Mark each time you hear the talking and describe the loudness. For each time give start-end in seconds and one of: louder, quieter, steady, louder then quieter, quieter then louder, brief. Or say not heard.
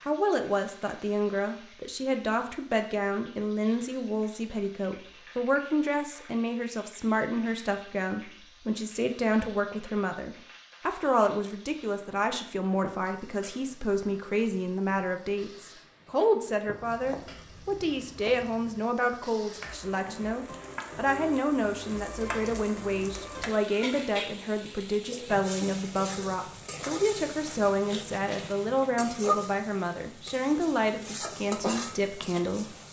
0.0-32.8 steady.